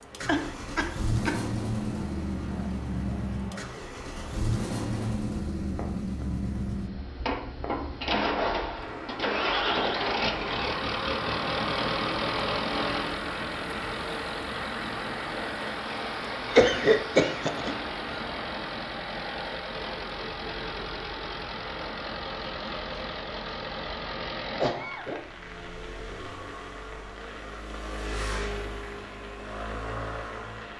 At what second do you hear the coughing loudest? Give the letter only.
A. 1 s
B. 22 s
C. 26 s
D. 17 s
D.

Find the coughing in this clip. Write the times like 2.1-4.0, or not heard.
0.2-1.4, 16.5-17.8, 24.6-25.2.